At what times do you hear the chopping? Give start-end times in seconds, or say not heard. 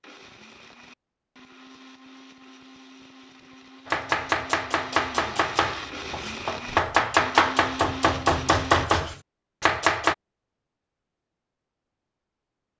3.9-10.2.